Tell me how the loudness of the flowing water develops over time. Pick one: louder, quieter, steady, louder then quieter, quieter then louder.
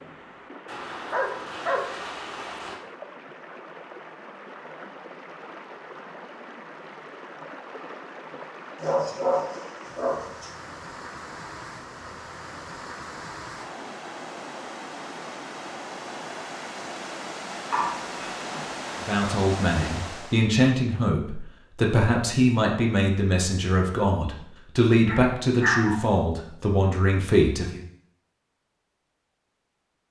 louder.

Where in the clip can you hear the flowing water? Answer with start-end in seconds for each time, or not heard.
0.0-20.5.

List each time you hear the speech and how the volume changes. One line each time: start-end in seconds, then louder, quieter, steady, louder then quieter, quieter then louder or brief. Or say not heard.
19.0-27.8 steady.